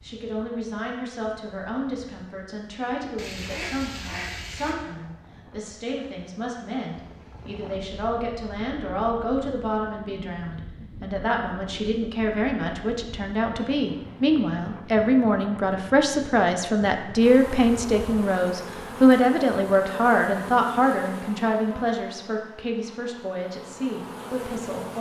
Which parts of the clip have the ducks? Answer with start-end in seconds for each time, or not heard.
3.1-4.8.